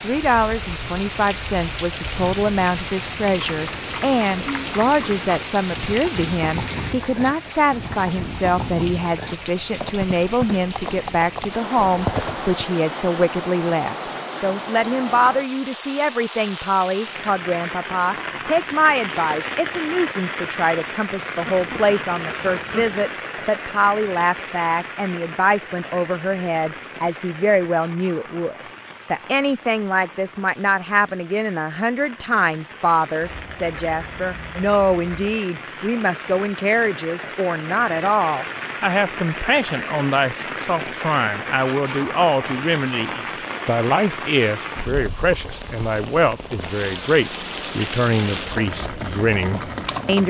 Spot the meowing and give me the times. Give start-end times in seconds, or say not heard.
not heard.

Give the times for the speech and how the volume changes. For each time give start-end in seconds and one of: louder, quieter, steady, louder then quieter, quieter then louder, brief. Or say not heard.
0.0-50.2 steady.